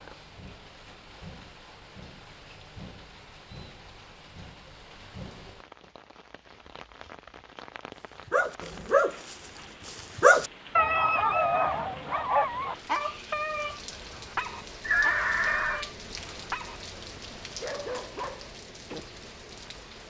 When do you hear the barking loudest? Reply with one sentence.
The volume of the barking peaks at 10 seconds.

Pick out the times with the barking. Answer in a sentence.
You can hear the barking from 8.0 to 16.8 s and from 17.6 to 19.0 s.